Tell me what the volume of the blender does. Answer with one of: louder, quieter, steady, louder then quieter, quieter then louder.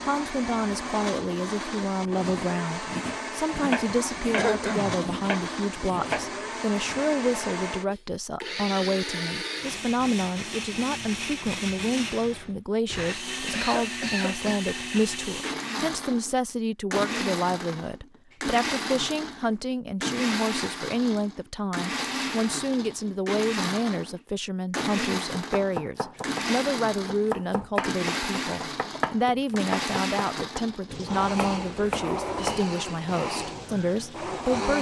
steady.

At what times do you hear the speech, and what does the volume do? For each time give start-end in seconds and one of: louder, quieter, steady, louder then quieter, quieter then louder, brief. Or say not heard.
0.0-34.7 steady.